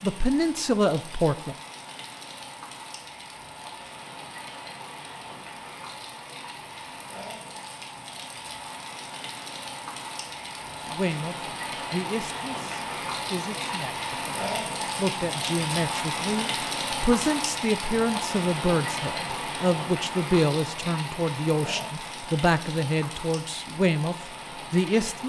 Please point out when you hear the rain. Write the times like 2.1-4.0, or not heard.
0.0-25.2.